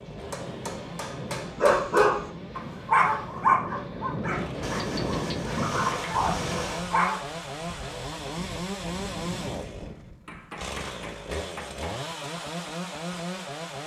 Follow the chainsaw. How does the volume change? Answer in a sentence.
The volume of the chainsaw goes up.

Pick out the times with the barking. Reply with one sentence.
The barking can be heard from 1.6 to 7.2 s.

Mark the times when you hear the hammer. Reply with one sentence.
You can hear the hammer from 0.3 to 2.1 s, from 4.6 to 6.9 s and from 10.2 to 12.0 s.